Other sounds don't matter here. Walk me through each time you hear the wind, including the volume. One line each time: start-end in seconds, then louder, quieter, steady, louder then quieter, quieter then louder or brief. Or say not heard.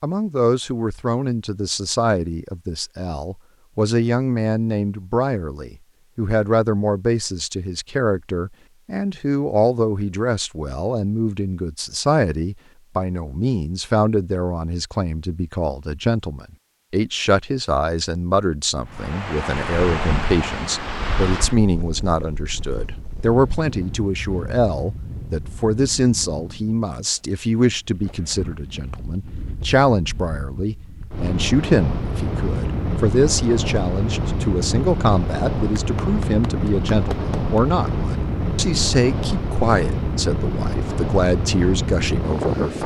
18.9-42.8 quieter then louder.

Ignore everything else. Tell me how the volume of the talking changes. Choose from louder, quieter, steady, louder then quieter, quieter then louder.
steady.